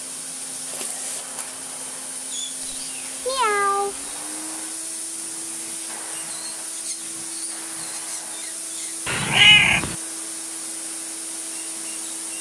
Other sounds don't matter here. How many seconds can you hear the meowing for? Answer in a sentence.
You can hear the meowing for 2 seconds altogether.